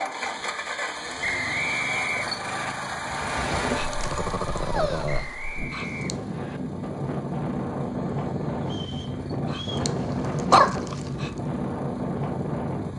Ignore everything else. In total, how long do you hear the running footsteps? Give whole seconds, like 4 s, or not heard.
not heard.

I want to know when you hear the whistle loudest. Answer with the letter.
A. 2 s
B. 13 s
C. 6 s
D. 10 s
A.